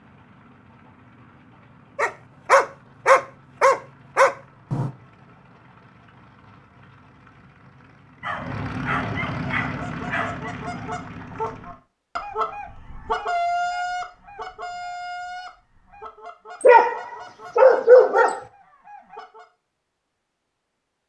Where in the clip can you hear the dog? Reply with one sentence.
The dog can be heard from 1.9 to 4.9 s, from 8.2 to 10.6 s and from 16.6 to 18.4 s.